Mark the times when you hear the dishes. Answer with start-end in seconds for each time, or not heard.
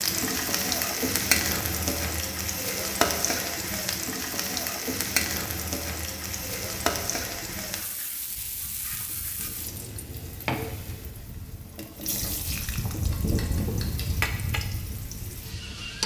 not heard.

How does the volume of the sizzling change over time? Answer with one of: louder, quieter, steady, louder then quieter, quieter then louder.
quieter.